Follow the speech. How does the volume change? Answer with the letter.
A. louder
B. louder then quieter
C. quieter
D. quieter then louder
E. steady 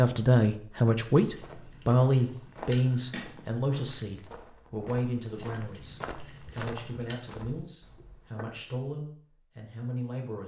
C.